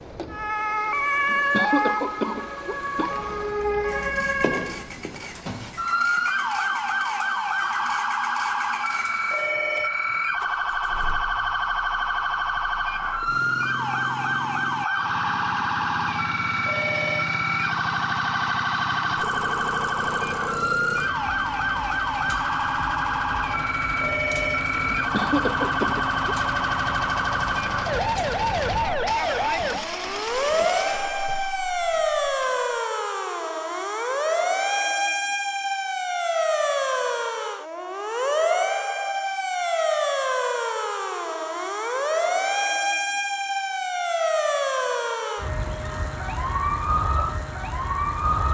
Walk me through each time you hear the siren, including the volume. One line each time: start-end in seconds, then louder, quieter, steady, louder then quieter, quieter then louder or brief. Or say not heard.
0.0-48.4 steady.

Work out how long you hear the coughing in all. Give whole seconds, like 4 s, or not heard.
3 s.